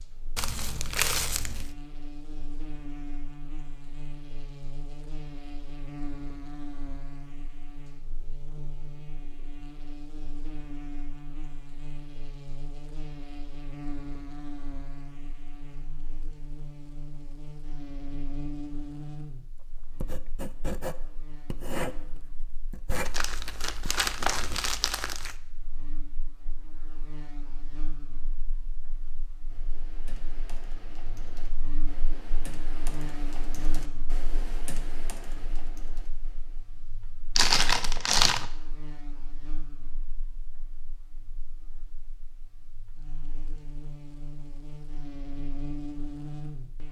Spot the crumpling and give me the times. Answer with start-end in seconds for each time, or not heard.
0.3-1.7, 22.9-25.4, 37.4-38.5.